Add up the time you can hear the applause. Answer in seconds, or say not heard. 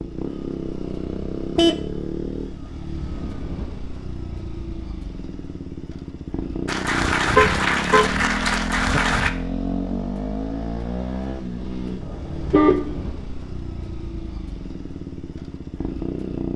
3 s.